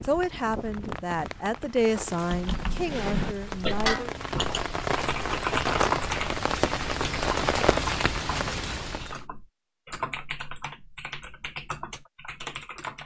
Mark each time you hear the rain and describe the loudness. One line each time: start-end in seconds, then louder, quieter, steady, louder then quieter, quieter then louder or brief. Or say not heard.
0.0-9.2 louder.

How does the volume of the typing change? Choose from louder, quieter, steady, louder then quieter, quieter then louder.
quieter.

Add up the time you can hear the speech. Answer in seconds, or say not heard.
4 s.